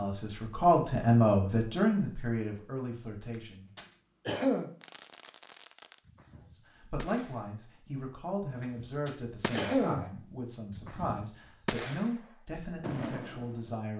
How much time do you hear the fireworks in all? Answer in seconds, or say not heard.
9 s.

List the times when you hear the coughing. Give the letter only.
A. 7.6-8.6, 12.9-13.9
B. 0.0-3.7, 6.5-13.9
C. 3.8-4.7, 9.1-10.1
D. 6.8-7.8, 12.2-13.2
C.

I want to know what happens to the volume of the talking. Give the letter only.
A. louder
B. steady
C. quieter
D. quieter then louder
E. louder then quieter
C.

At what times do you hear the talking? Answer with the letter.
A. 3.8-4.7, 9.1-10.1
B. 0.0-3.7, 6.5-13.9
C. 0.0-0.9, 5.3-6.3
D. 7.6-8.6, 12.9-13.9
B.